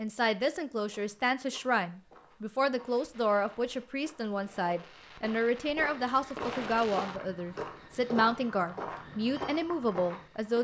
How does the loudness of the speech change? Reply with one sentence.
The loudness of the speech stays about the same.